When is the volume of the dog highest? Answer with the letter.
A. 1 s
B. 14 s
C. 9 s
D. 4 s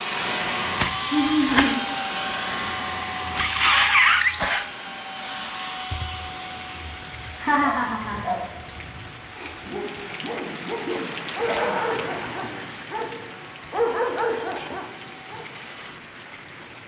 B.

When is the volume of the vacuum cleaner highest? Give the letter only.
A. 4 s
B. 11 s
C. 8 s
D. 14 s
A.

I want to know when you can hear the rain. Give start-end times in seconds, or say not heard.
6.2-16.8.